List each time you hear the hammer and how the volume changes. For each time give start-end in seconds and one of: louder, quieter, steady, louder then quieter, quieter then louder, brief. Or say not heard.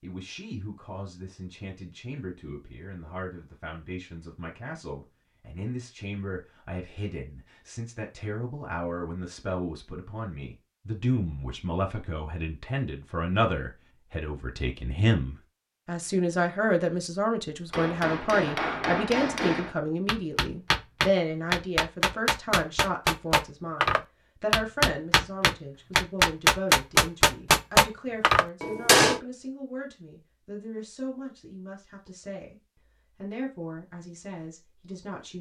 17.7-29.2 louder.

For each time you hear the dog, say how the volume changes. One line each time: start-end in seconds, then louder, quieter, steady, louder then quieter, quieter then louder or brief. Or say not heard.
not heard.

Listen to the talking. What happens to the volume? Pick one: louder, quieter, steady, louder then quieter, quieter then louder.
louder then quieter.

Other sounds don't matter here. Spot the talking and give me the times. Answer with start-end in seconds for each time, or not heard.
0.0-35.3.